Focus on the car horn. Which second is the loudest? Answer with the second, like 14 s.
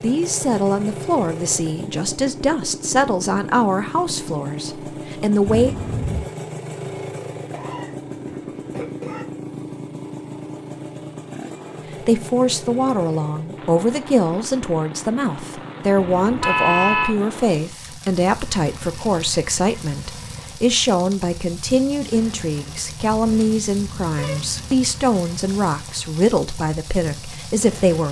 17 s.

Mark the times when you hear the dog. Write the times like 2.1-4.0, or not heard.
not heard.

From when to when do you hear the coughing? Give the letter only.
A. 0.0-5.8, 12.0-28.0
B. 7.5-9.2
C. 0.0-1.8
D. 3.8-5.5
B.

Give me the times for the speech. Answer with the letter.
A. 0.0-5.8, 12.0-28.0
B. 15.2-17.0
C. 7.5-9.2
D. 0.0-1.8
A.